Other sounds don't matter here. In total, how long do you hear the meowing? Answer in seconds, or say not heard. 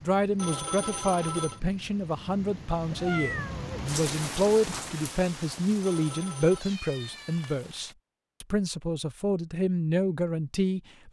2 s.